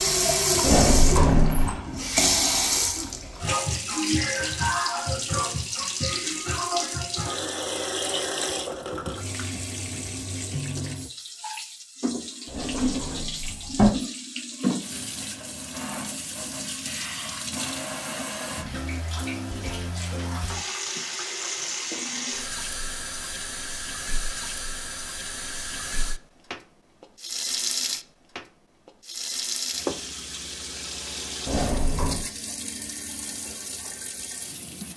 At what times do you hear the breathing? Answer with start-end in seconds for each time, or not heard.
not heard.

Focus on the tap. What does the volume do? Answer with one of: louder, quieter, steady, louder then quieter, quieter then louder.
quieter.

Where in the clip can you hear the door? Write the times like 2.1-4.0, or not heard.
0.6-1.8, 12.4-13.9, 31.4-32.2.